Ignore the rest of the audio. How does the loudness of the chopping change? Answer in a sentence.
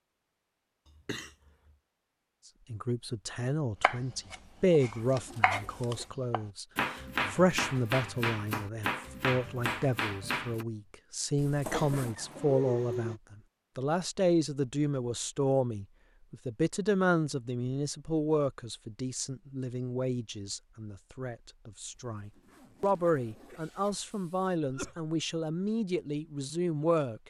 The volume of the chopping goes up.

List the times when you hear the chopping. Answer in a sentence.
The chopping can be heard from 3.8 to 10.7 s.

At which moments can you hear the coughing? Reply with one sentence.
The coughing can be heard from 0.8 to 1.8 s, from 11.6 to 13.2 s and from 24.1 to 25.1 s.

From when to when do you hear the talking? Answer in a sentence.
You can hear the talking from 2.7 to 27.2 s.